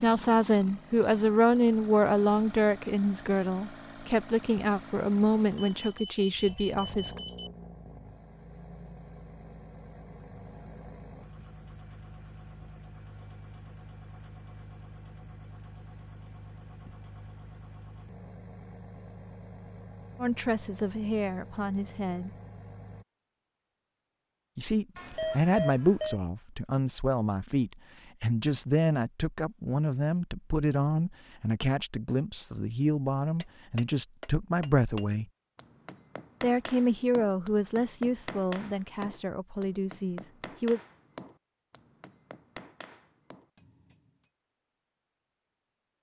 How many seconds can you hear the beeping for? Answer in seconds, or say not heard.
3 s.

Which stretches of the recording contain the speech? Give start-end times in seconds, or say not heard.
0.0-7.2, 20.2-22.3, 24.6-35.2, 36.4-40.8.